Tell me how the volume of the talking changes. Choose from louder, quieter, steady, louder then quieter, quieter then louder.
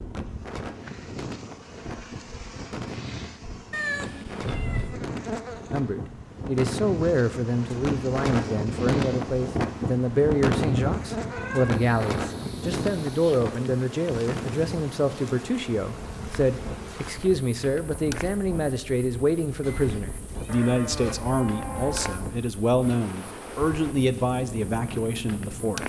steady.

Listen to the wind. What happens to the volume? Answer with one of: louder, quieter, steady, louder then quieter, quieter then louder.
louder then quieter.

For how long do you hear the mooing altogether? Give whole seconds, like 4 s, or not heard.
2 s.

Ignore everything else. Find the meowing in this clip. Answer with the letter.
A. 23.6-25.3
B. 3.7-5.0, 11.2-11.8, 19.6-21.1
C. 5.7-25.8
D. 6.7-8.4
B.